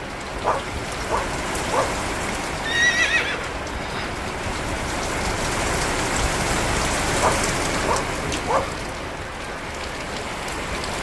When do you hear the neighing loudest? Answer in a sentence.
The loudest moment of the neighing is at 3 seconds.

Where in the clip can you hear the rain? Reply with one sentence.
You can hear the rain from 0.0 to 10.9 s.